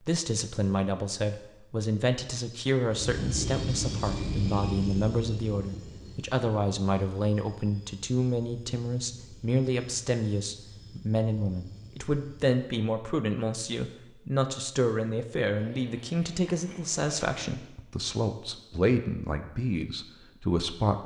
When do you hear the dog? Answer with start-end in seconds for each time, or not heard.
not heard.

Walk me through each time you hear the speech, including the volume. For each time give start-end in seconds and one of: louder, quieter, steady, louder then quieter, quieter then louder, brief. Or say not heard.
0.0-21.0 steady.